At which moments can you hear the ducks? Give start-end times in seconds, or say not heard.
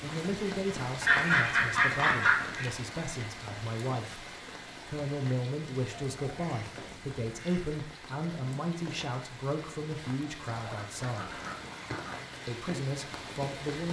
1.0-2.7, 5.8-7.8, 10.4-12.2.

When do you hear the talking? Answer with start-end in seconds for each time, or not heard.
0.0-11.3, 12.4-13.8.